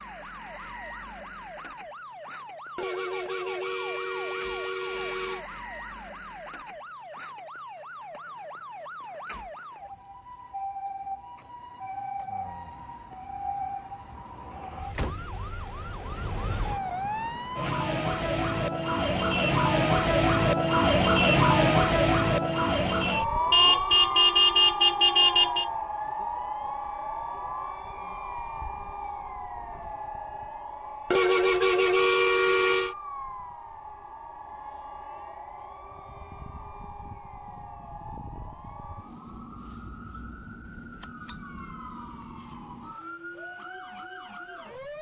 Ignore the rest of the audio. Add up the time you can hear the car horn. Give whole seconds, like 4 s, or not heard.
7 s.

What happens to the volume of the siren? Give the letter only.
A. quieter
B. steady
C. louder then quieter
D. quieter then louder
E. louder
C.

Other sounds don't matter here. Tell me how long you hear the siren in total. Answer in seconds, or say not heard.
45 s.